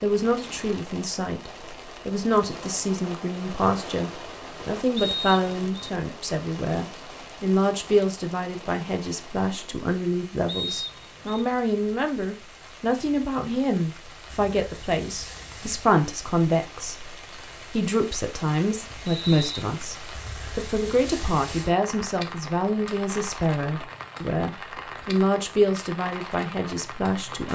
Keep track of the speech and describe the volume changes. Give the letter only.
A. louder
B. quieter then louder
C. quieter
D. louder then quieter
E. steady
E.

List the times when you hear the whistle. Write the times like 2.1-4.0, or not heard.
5.0-5.9, 10.4-11.4, 19.1-19.6.